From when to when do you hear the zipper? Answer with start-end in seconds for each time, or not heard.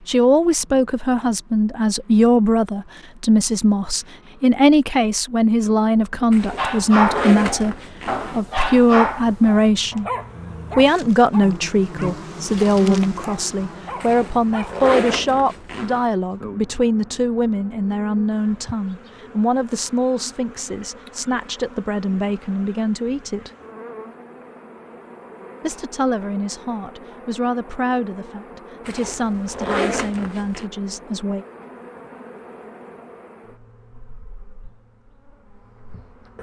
6.3-8.4, 14.0-16.1, 28.9-30.7.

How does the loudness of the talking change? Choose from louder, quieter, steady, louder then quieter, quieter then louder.
quieter.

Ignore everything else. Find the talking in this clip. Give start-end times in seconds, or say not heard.
0.1-10.1, 10.8-23.5, 25.6-31.4.